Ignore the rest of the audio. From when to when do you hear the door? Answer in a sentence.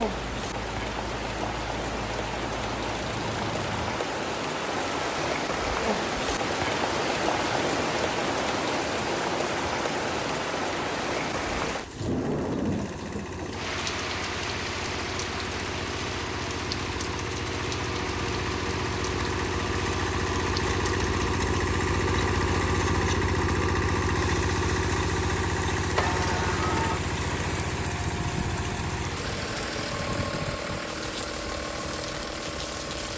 The door can be heard from 25.9 to 27.0 s.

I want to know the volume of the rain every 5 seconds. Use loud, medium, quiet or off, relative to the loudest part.
loud, loud, loud, medium, medium, medium, medium.